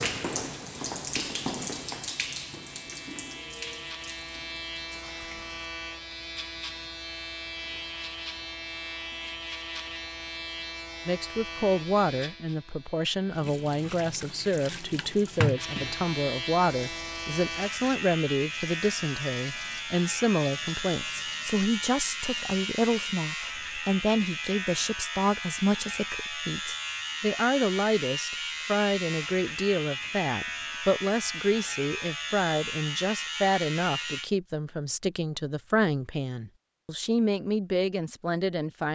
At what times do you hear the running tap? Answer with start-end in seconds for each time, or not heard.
0.0-5.7, 13.3-23.1.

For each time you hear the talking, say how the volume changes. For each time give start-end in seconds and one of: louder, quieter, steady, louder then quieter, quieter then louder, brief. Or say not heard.
11.1-38.9 steady.